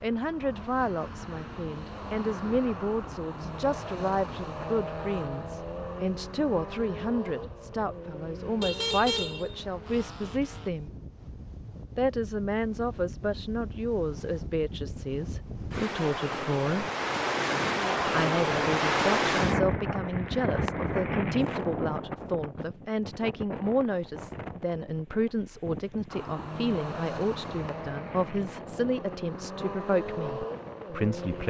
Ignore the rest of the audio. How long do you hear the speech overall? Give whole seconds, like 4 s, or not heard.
29 s.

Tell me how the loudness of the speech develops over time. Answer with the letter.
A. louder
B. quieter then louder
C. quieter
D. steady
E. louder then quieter
D.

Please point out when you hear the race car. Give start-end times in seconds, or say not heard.
0.0-10.7, 26.1-31.4.